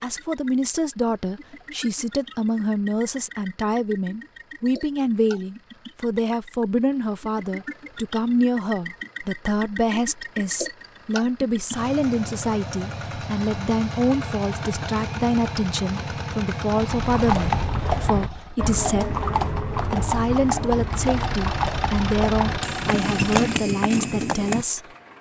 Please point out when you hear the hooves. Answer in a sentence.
The hooves can be heard from 16.7 to 24.6 s.